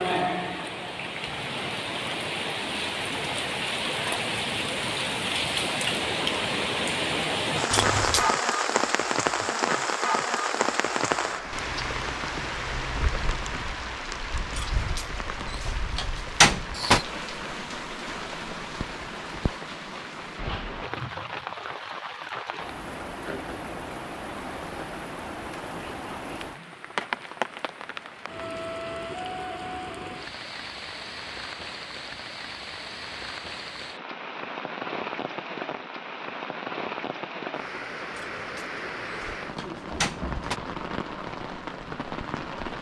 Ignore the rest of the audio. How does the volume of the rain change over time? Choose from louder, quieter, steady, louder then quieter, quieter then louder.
quieter.